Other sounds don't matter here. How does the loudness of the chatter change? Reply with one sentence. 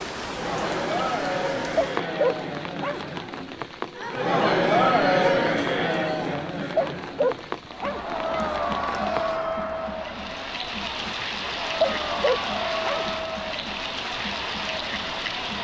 The volume of the chatter goes up, then down.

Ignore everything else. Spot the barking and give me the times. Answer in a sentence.
The barking can be heard from 1.8 to 3.0 s, from 6.8 to 8.0 s and from 11.8 to 13.1 s.